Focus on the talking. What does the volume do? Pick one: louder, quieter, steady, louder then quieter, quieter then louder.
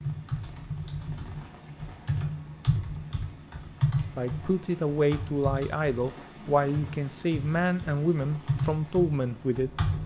steady.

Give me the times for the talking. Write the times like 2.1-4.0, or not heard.
4.2-9.7.